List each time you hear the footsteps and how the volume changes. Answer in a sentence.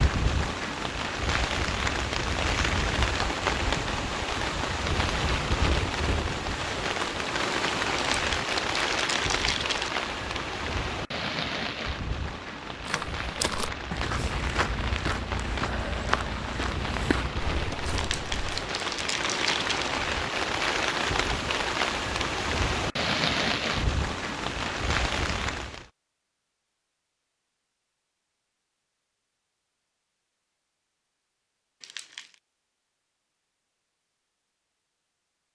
The footsteps can be heard from 12.8 to 18.6 s, getting quieter.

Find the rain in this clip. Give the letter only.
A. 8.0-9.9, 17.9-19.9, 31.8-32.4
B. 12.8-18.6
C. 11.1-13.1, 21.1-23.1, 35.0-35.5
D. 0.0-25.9
D.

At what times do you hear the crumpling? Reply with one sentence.
The crumpling can be heard from 8.0 to 9.9 s, from 17.9 to 19.9 s and from 31.8 to 32.4 s.